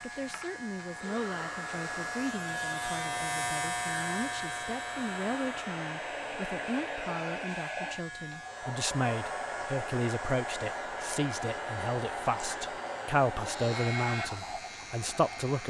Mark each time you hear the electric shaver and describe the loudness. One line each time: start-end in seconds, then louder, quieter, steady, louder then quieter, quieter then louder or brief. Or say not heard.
0.0-15.6 quieter.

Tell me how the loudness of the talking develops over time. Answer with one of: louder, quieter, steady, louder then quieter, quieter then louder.
louder.